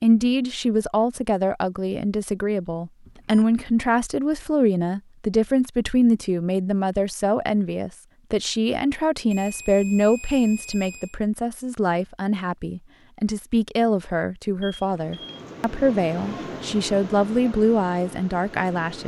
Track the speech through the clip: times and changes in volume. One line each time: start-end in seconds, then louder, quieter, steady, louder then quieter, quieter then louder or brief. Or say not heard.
0.0-19.0 steady.